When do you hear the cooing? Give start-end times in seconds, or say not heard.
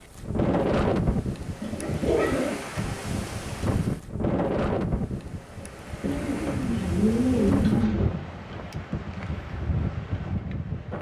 1.6-3.0, 6.0-8.1.